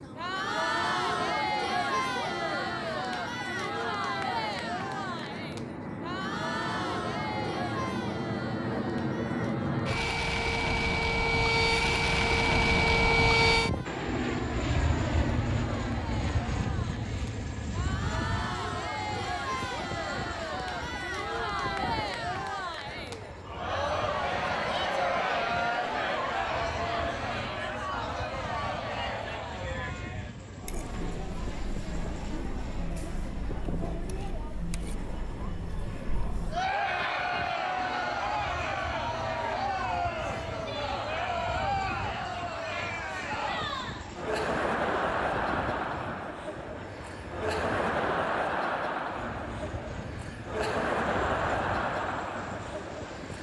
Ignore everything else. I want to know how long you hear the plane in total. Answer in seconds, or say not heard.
53 s.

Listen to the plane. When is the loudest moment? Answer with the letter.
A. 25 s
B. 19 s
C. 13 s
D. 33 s
C.